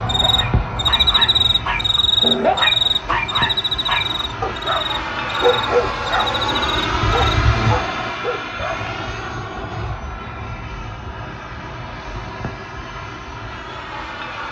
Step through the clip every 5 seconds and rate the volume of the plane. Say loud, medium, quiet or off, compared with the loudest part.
medium, loud, medium.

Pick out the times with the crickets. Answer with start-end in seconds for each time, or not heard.
0.1-7.4.